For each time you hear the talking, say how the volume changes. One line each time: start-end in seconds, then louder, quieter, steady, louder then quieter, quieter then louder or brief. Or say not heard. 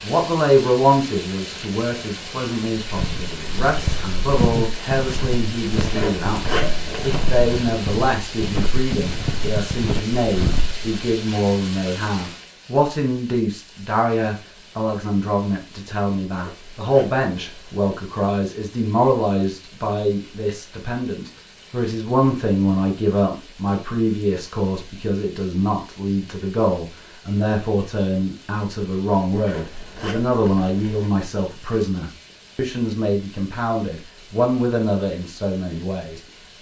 0.0-36.5 steady.